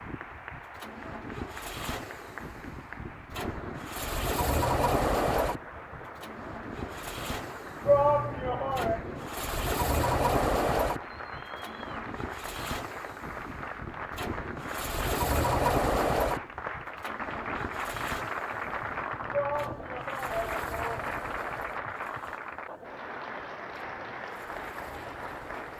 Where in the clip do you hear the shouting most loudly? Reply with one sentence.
The loudest moment of the shouting is at 8 seconds.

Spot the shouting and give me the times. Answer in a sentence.
The shouting can be heard from 7.8 to 9.0 s and from 19.3 to 21.1 s.